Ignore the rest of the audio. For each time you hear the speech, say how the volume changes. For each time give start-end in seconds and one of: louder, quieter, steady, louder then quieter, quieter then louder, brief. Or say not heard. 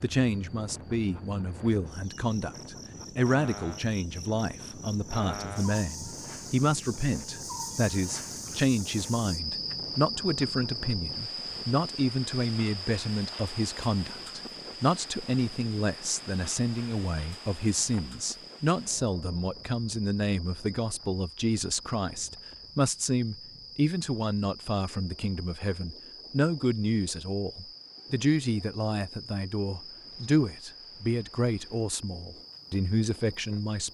0.0-33.9 steady.